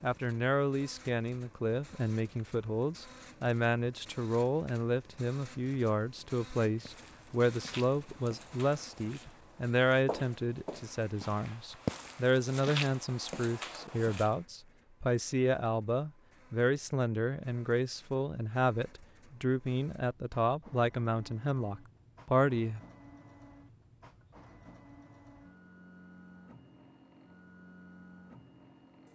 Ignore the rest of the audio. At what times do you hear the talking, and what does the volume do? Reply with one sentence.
The talking can be heard from 0.0 to 22.8 s, at a steady volume.